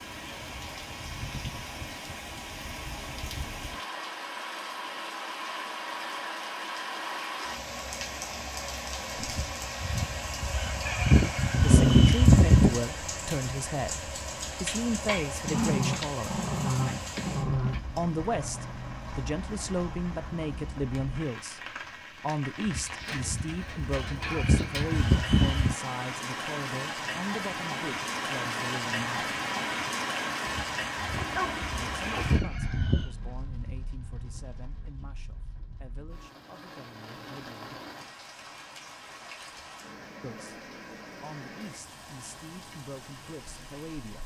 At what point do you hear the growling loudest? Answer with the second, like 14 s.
12 s.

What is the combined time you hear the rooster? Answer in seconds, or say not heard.
9 s.